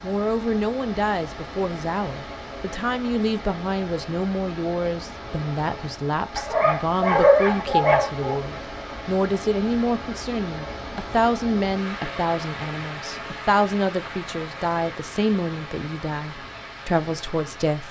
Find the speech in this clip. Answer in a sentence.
The speech can be heard from 0.0 to 17.8 s.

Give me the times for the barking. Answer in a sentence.
The barking can be heard from 6.3 to 8.3 s.